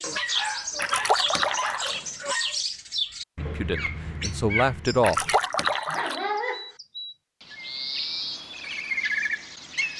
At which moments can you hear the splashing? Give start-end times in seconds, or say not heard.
0.8-2.0, 5.0-6.2.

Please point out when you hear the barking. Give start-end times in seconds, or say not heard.
0.0-2.6, 5.5-6.8.